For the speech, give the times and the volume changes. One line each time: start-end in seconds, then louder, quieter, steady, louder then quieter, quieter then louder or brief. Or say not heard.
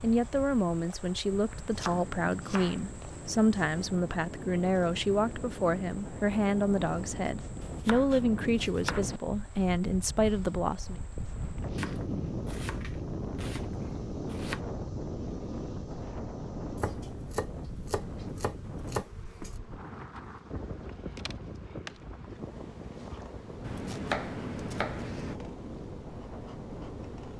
0.0-11.1 steady.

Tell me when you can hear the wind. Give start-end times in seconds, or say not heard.
0.0-27.3.